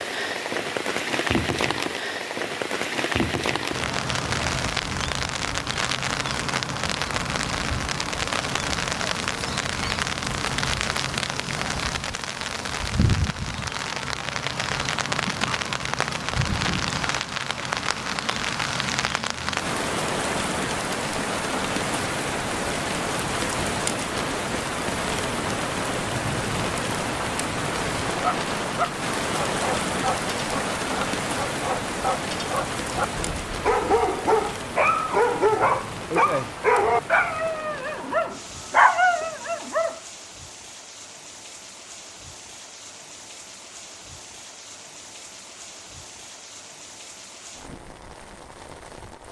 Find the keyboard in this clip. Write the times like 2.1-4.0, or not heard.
not heard.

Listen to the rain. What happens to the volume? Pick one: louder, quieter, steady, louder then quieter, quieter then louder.
quieter.